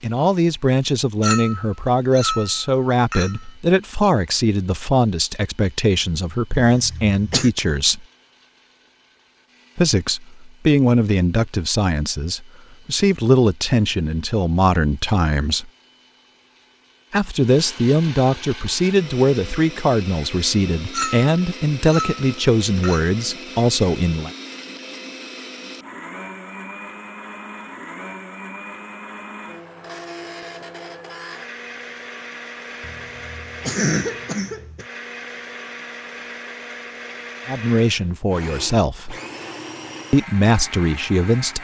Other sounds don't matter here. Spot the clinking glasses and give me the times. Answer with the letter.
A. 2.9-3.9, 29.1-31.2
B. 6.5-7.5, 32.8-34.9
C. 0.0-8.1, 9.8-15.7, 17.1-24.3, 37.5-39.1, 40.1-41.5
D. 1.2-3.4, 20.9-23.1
D.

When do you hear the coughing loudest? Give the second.
34 s.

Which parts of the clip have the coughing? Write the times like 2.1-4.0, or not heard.
6.5-7.5, 32.8-34.9.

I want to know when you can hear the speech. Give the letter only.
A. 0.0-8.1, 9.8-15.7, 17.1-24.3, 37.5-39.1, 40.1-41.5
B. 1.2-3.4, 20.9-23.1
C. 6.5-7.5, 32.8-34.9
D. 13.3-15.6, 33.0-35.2
A.